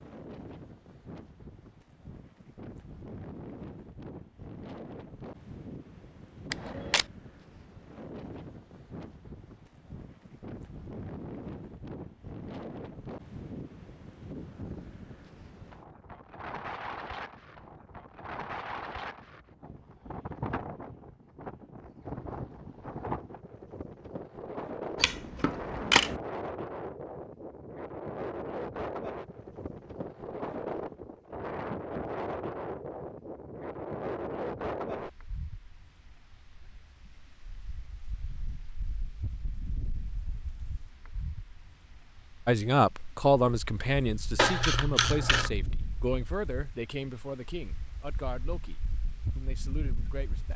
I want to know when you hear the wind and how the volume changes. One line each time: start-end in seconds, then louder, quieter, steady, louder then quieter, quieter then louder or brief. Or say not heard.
0.0-50.5 louder then quieter.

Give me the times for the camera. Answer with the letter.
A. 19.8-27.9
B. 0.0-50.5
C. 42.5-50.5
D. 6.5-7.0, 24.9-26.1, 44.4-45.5
D.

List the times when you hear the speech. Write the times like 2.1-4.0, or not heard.
42.5-50.5.